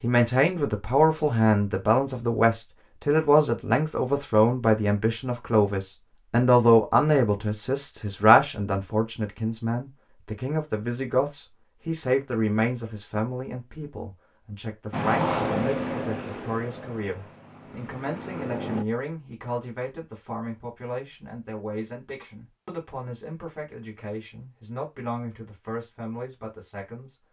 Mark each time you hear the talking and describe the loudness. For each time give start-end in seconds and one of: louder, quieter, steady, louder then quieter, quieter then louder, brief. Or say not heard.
0.0-27.1 quieter.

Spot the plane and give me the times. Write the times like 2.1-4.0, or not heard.
14.9-18.9.